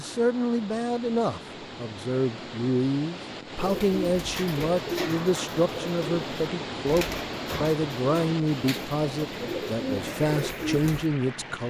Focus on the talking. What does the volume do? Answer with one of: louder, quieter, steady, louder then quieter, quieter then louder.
steady.